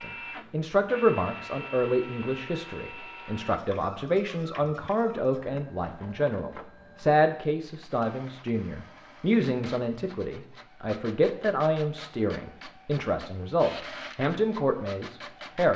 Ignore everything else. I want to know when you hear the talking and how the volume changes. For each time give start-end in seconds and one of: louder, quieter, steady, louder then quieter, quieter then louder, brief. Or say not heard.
0.0-15.7 steady.